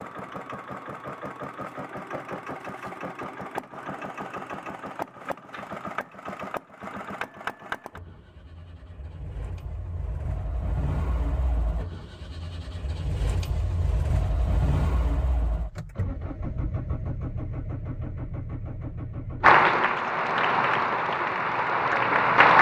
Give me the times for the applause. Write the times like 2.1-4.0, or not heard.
19.4-22.5.